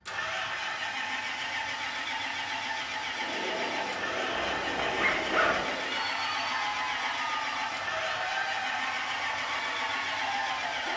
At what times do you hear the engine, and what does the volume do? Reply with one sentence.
The engine can be heard from 0.0 to 10.9 s, at a steady volume.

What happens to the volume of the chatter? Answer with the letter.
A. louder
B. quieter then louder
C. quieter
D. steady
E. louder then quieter
D.